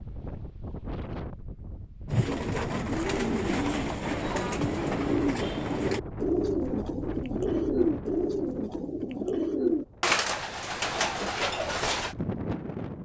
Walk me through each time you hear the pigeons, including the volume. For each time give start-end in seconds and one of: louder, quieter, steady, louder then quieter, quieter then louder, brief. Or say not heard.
2.0-12.2 steady.